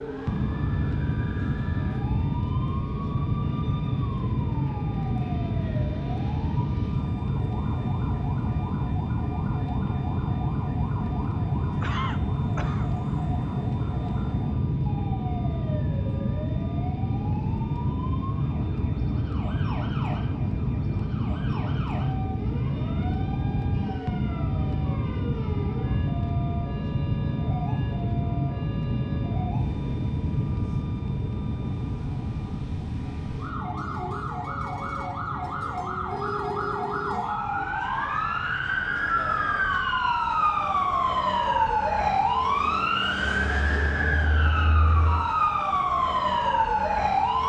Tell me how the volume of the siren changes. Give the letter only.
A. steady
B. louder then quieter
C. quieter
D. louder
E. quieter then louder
D.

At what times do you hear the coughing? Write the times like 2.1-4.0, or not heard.
11.8-12.9.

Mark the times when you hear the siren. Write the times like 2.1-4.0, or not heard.
0.0-47.4.